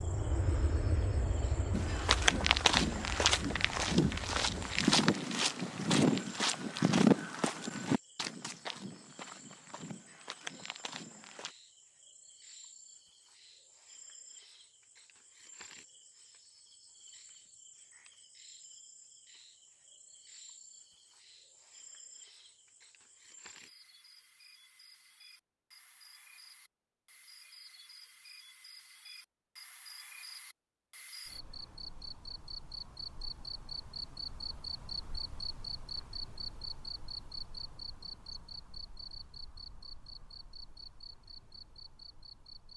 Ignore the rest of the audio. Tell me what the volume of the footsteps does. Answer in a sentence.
The volume of the footsteps goes down.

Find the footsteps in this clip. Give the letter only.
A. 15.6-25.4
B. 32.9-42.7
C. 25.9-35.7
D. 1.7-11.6
D.